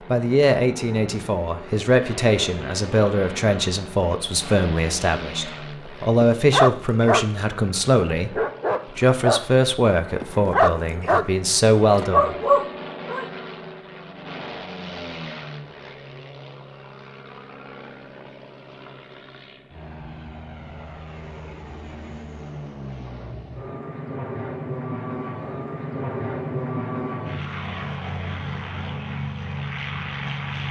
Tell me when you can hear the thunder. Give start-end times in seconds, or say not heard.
not heard.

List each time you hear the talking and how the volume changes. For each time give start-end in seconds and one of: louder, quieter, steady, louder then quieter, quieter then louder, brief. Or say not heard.
0.1-12.3 steady.